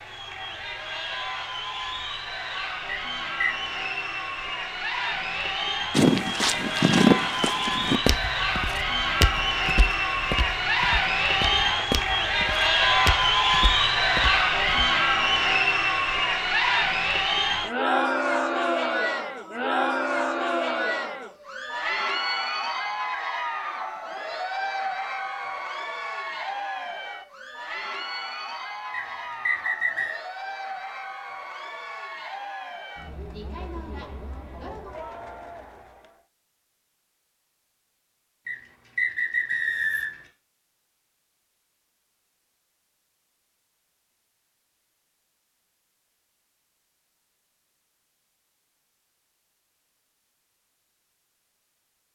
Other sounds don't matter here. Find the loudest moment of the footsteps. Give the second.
7 s.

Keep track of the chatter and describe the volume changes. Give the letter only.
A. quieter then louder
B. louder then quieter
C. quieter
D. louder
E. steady
B.